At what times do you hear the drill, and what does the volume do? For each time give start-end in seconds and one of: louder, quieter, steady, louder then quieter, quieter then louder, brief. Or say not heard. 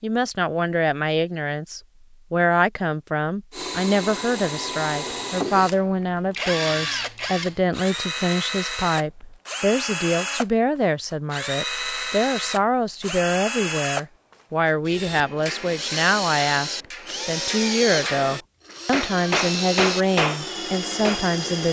3.5-21.6 steady.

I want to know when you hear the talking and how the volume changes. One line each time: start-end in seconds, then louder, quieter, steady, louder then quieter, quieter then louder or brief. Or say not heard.
0.0-21.6 steady.